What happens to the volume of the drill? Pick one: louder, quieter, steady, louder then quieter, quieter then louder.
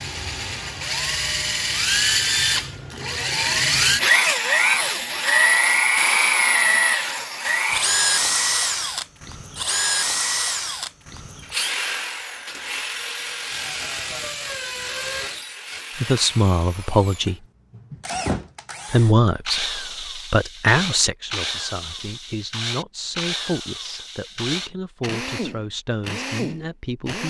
quieter.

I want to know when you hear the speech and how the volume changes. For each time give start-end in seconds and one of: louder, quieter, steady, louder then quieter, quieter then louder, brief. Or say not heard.
15.9-17.4 brief
18.9-27.2 quieter.